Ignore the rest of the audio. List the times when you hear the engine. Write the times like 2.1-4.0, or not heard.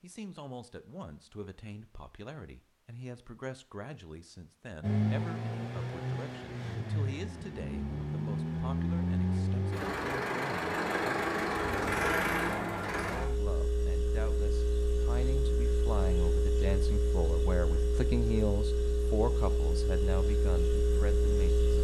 4.8-21.7.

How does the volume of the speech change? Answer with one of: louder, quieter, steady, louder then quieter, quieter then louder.
louder.